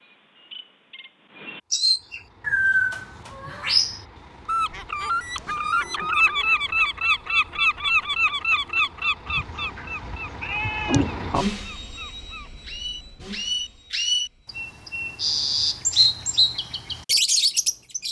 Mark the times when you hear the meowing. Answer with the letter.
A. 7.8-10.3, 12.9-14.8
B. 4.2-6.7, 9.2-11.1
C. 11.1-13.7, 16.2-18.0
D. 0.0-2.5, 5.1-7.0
B.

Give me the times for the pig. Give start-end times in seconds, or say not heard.
not heard.